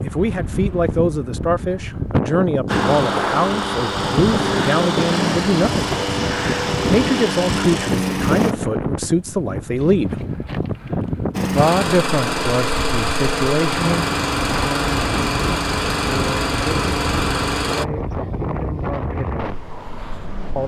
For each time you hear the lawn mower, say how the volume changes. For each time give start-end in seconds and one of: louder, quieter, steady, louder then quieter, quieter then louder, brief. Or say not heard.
2.6-8.6 steady
11.3-17.9 steady.